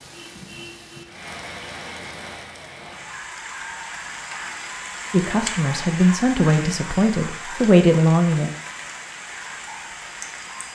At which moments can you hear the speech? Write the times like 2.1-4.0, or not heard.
5.1-8.5.